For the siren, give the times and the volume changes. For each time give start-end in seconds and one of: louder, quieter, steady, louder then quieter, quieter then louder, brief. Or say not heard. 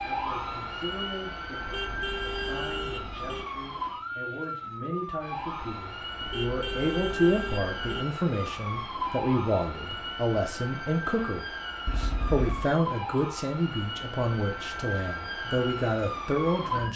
0.0-16.9 steady.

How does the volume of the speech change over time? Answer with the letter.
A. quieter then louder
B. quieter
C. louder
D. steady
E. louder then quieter
C.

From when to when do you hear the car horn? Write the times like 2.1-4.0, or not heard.
1.6-3.5, 6.2-8.1, 11.8-12.7.